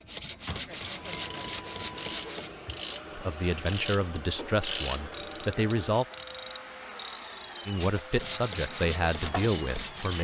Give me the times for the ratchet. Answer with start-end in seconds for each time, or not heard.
1.1-9.6.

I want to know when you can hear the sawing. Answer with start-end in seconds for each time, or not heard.
0.0-2.5, 7.8-10.1.